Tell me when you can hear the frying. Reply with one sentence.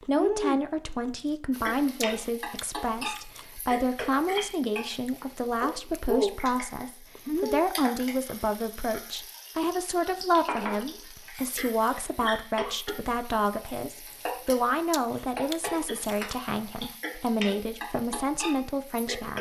The frying can be heard from 1.5 to 19.3 s.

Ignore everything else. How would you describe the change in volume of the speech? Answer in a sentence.
The volume of the speech stays about the same.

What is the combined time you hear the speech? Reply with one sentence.
You can hear the speech for 19 seconds altogether.